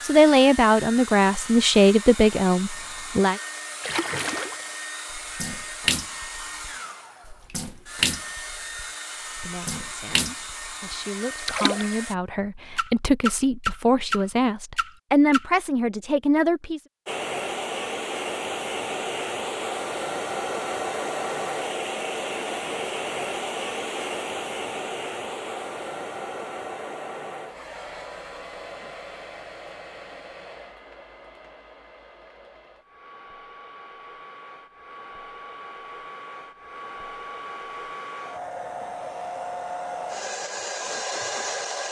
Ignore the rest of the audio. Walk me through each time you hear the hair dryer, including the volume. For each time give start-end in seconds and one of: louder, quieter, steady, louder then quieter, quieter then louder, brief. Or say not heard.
0.0-12.2 steady
17.1-41.8 quieter then louder.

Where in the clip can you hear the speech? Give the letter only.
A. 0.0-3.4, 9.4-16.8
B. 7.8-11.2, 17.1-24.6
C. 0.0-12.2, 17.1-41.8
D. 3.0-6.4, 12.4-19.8
A.